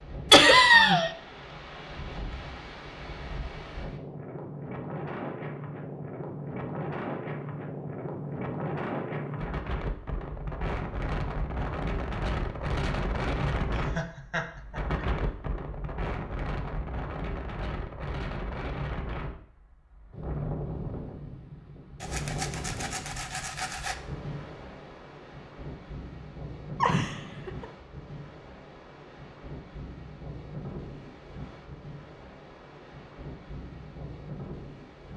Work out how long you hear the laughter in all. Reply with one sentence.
You can hear the laughter for 3 seconds altogether.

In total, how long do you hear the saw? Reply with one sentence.
The saw can be heard for 2 seconds in total.